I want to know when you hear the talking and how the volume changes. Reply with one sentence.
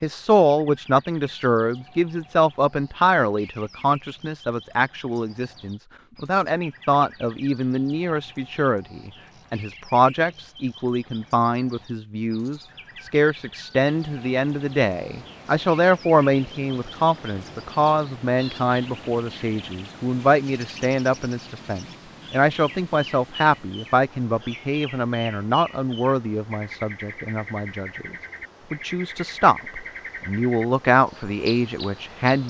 You can hear the talking from 0.0 to 32.4 s, at a steady volume.